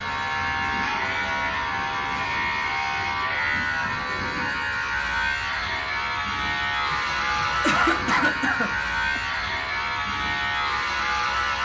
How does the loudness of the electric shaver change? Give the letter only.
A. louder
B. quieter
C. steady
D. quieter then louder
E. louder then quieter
C.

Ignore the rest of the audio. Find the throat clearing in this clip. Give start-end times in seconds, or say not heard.
6.9-9.2.